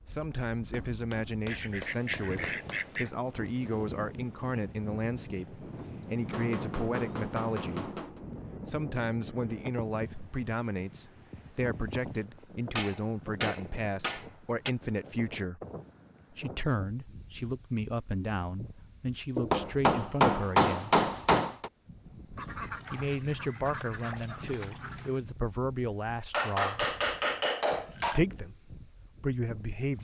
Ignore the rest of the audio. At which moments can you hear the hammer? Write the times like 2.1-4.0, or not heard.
0.3-3.0, 6.3-8.2, 12.8-14.7, 19.4-21.7, 26.3-28.2.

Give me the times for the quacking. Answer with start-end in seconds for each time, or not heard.
1.4-3.1, 22.4-25.2.